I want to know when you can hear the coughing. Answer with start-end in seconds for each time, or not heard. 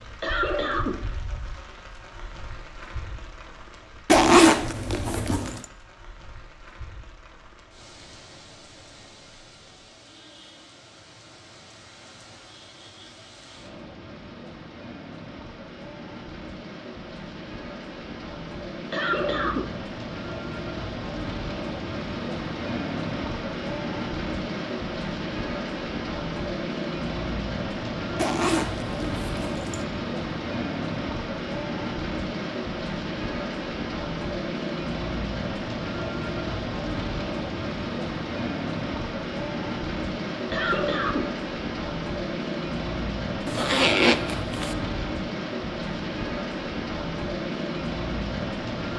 0.2-1.1, 18.9-19.8, 40.5-41.4.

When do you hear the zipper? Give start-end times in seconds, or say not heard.
4.0-5.7, 28.1-29.9, 43.5-44.8.